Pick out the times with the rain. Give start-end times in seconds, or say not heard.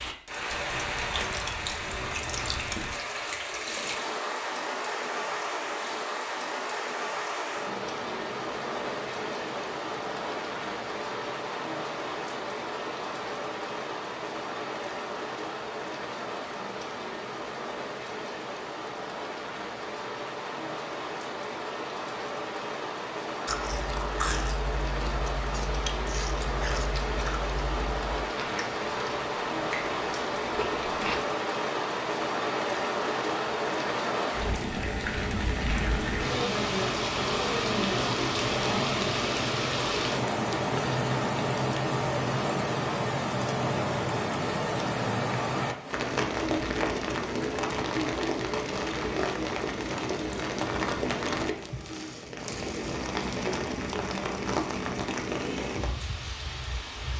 0.0-57.1.